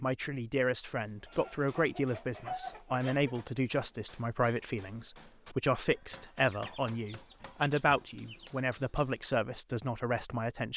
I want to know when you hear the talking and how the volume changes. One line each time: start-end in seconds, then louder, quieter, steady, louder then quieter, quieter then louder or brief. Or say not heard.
0.0-10.7 steady.